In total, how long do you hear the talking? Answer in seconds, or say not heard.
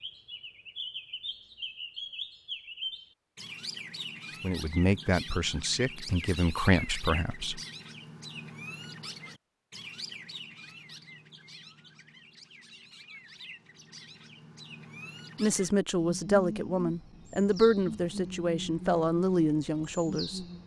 8 s.